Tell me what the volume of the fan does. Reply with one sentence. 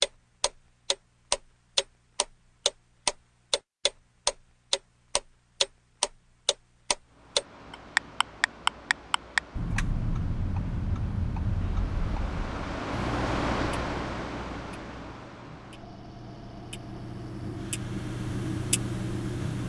The loudness of the fan goes up, then down.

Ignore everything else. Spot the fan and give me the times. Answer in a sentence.
You can hear the fan from 7.0 to 19.6 s.